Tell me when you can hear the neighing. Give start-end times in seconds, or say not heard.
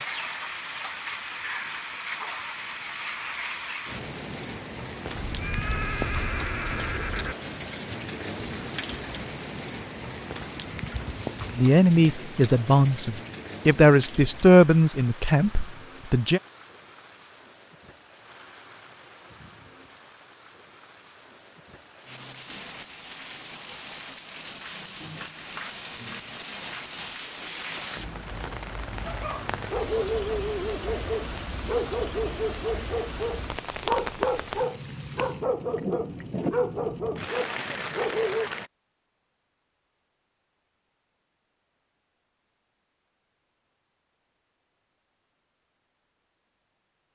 5.0-7.3.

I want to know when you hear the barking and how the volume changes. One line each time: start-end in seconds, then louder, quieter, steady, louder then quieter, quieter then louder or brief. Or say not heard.
29.1-38.5 steady.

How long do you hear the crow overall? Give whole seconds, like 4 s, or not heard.
not heard.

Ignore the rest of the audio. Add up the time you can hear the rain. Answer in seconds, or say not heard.
39 s.